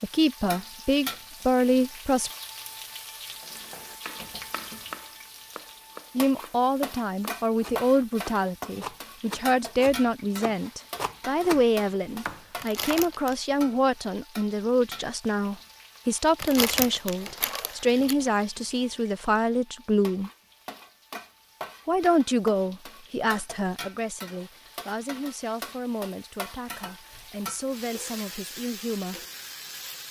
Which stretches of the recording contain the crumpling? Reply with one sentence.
The crumpling can be heard from 12.6 to 13.3 s and from 16.4 to 18.1 s.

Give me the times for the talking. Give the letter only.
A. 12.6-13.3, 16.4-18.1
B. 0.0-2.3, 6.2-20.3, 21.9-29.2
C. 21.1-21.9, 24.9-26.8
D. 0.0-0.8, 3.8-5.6
B.